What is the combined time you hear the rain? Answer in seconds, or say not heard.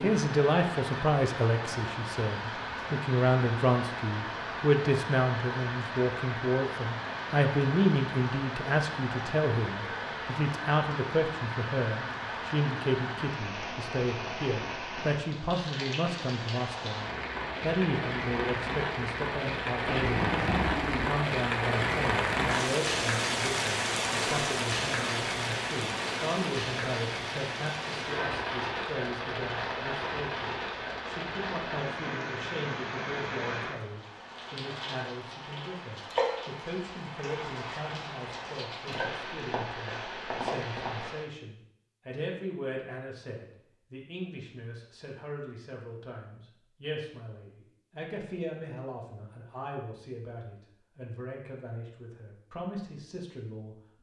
41 s.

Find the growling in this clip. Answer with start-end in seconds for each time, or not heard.
19.9-21.1.